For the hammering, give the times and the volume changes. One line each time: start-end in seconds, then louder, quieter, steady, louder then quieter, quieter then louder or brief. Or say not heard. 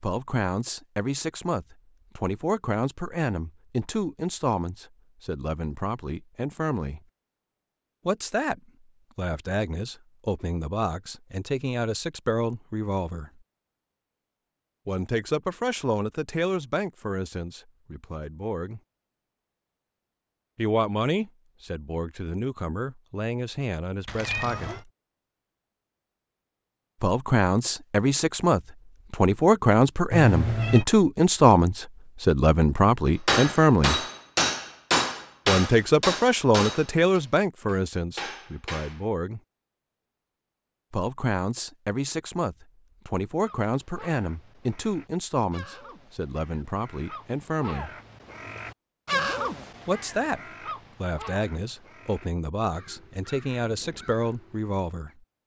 33.2-39.0 quieter.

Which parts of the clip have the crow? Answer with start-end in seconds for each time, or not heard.
43.4-55.1.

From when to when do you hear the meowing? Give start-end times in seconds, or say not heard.
24.1-24.8, 30.1-30.9.